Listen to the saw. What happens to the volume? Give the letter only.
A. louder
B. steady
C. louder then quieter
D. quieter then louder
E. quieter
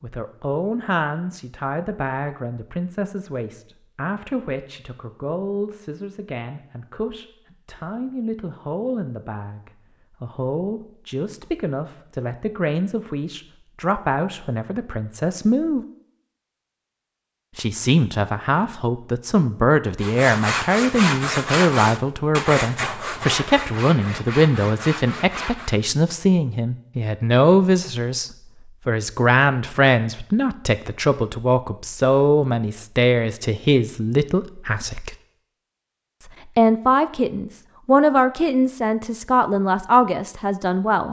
E.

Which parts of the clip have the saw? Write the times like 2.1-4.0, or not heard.
20.0-25.8.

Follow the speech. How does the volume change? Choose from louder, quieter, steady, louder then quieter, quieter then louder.
louder.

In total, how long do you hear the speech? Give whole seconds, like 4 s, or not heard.
38 s.